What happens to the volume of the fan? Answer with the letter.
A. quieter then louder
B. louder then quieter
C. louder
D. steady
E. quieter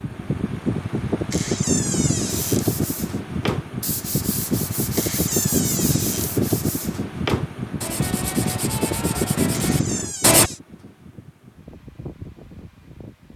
E.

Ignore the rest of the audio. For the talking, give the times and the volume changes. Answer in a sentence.
The talking can't be heard in this clip.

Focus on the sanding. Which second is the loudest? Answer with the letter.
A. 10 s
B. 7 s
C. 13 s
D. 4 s
A.